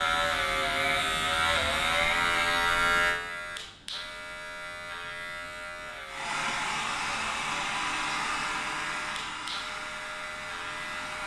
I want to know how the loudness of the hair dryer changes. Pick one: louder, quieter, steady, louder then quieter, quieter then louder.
quieter.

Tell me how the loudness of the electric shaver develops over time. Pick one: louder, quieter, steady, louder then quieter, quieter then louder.
quieter.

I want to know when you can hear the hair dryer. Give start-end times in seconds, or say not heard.
6.0-11.2.